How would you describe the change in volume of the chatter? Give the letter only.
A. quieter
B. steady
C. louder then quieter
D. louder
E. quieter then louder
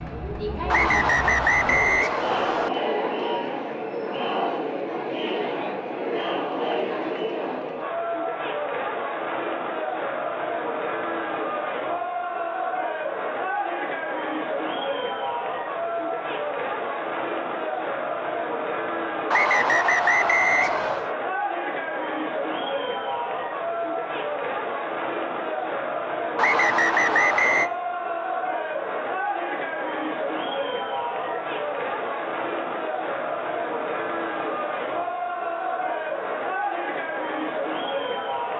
B.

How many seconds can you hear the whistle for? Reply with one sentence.
You can hear the whistle for 5 seconds altogether.